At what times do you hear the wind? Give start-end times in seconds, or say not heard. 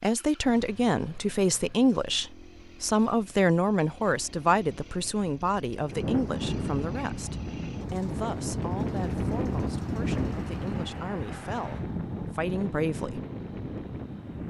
5.8-14.4.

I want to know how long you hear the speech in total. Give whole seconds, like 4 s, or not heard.
13 s.